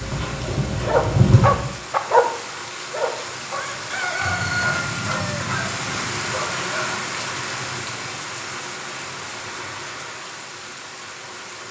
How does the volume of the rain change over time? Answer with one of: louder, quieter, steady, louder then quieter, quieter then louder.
louder then quieter.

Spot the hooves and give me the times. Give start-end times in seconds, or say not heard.
0.0-1.7.